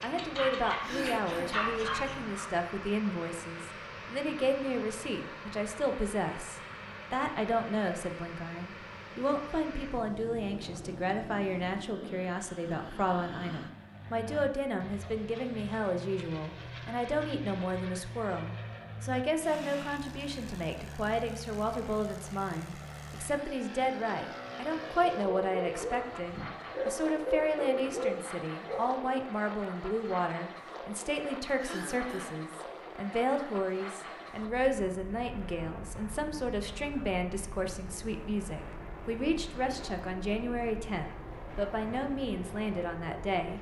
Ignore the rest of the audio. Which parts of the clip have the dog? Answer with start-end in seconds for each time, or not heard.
0.0-2.5, 24.9-29.1.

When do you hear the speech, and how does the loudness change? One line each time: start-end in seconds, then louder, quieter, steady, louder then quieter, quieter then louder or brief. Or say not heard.
0.0-43.5 steady.